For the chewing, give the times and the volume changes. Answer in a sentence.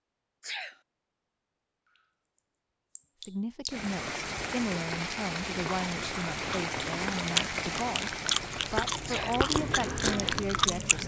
You can hear the chewing from 5.7 to 11.0 s, getting louder.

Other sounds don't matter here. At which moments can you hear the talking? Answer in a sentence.
You can hear the talking from 3.2 to 11.0 s.